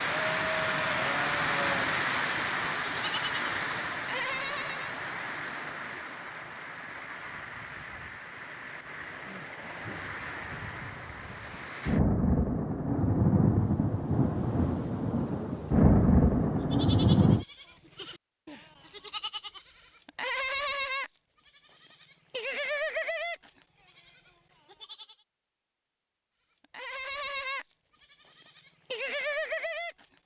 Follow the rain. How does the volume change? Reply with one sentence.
The volume of the rain goes down, then up.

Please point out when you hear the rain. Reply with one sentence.
The rain can be heard from 0.0 to 17.4 s.